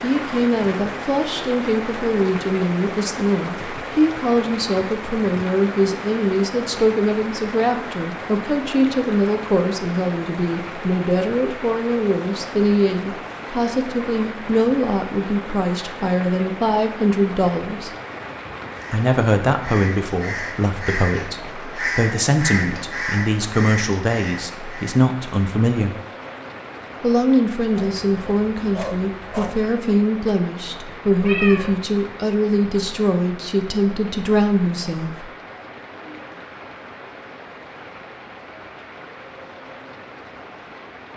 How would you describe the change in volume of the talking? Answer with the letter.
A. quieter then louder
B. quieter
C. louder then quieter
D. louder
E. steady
E.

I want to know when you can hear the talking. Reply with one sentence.
The talking can be heard from 0.0 to 17.9 s, from 18.9 to 25.9 s and from 27.0 to 35.2 s.